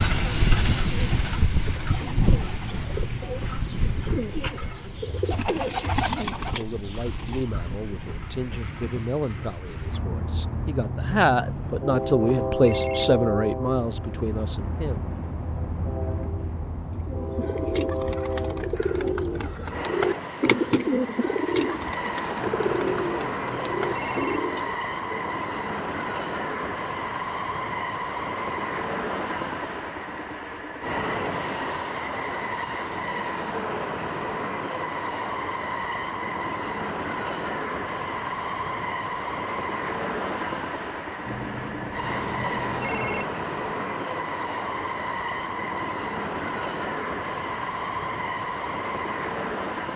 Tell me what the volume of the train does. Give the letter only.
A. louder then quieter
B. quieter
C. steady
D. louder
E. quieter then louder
C.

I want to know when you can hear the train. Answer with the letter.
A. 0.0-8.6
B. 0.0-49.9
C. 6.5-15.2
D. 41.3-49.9
B.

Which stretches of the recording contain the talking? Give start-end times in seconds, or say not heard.
6.5-15.2.